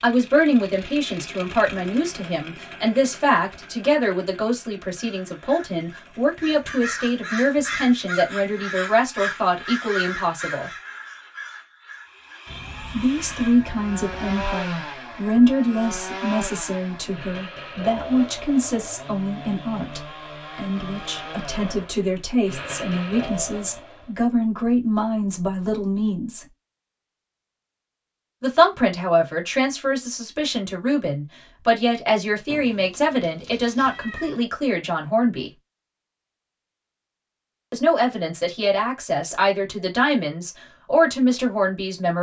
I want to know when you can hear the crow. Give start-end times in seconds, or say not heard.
5.0-14.4.